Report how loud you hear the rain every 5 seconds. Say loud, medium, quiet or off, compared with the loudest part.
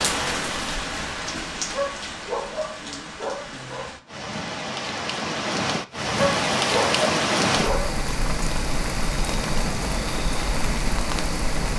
medium, loud, loud.